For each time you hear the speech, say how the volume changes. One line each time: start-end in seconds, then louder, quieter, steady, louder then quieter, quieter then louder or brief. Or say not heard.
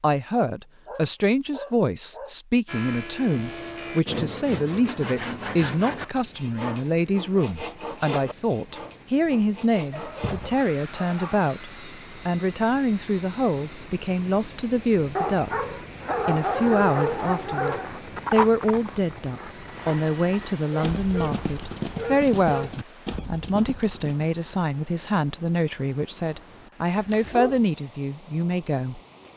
0.0-29.0 steady.